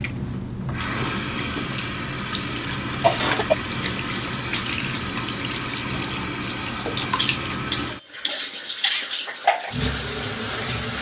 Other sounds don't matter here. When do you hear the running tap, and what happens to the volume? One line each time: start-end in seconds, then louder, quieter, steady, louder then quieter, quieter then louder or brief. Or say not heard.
0.0-10.9 steady.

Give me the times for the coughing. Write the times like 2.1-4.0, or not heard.
2.5-3.5, 7.2-9.2.